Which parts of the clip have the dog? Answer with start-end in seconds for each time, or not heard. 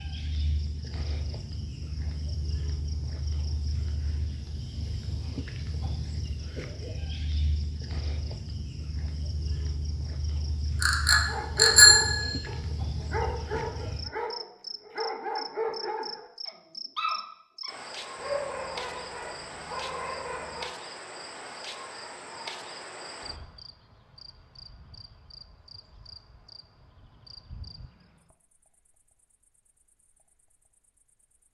11.2-20.7.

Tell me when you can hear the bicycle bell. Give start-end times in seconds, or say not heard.
10.8-12.3.